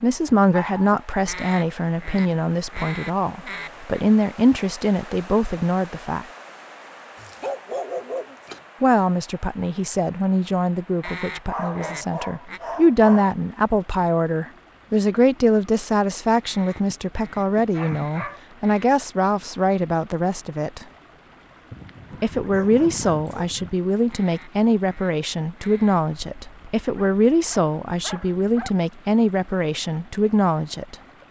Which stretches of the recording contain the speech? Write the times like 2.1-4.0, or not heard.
0.0-6.2, 8.8-20.9, 22.2-30.9.